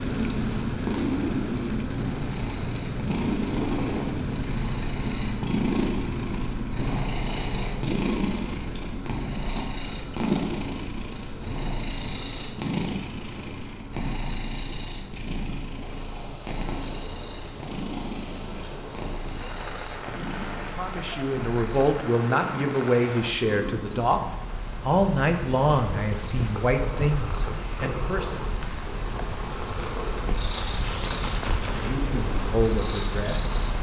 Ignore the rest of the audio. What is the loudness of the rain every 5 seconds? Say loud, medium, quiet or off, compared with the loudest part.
loud, medium, medium, medium, medium, medium, loud.